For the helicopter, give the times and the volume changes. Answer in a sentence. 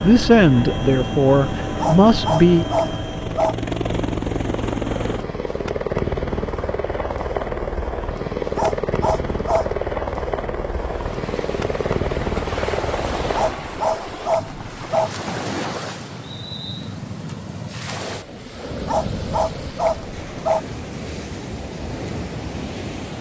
You can hear the helicopter from 0.0 to 13.6 s, at a steady volume.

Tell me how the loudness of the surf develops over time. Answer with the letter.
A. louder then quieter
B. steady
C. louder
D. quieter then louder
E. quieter
B.